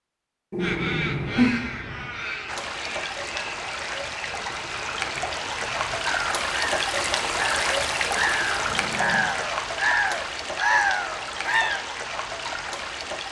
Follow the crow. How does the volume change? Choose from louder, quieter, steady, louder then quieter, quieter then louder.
quieter then louder.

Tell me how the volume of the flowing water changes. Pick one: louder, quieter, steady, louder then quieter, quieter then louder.
louder then quieter.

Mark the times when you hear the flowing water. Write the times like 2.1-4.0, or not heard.
2.5-13.2.